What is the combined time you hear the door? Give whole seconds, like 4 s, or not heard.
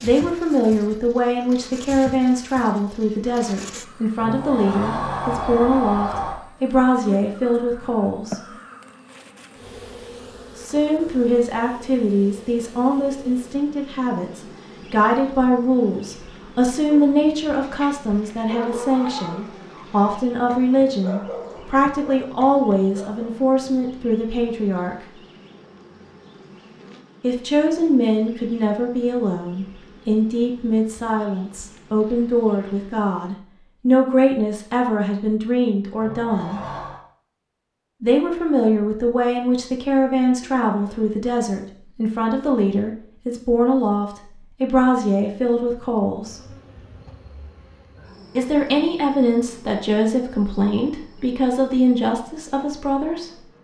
3 s.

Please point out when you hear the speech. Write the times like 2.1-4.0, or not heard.
0.0-8.5, 10.6-24.9, 27.2-36.6, 38.0-46.5, 48.4-53.4.